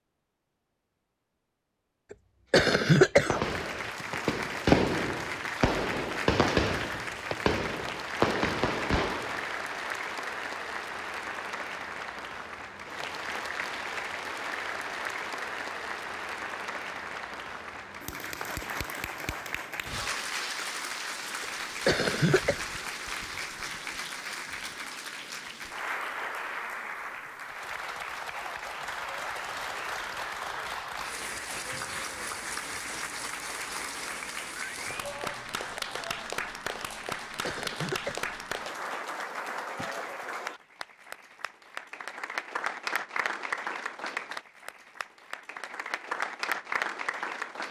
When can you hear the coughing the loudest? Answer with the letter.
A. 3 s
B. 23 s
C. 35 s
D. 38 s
A.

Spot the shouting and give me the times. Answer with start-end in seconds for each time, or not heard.
35.0-36.5.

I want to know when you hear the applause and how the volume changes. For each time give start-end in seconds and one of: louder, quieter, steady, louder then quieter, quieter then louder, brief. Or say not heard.
3.4-47.6 steady.